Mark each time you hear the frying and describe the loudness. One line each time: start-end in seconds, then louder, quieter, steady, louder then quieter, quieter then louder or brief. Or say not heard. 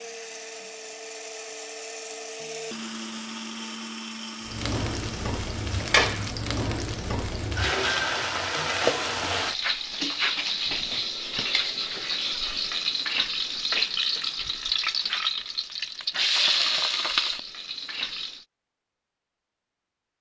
4.4-18.4 steady.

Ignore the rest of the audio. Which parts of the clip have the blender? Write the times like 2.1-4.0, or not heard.
0.0-6.3.